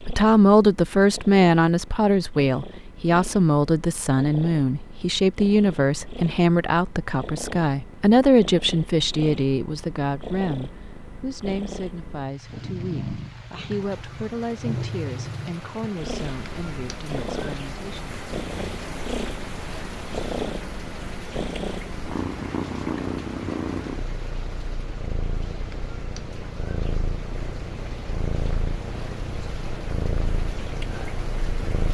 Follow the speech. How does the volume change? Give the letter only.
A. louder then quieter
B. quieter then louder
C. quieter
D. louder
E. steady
C.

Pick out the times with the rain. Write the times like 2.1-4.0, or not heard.
12.2-31.8.